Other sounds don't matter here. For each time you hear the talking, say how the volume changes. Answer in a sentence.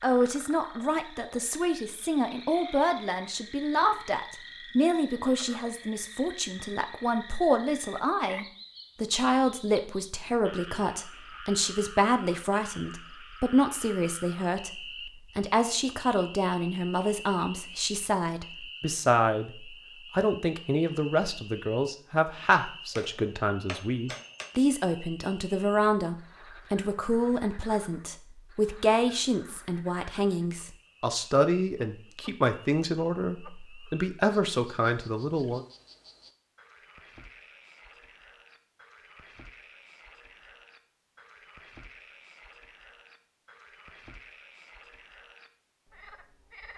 You can hear the talking from 0.0 to 35.6 s, at a steady volume.